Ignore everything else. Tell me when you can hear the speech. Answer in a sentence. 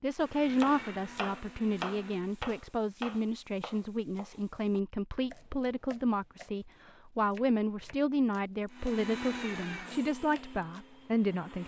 The speech can be heard from 0.0 to 11.6 s.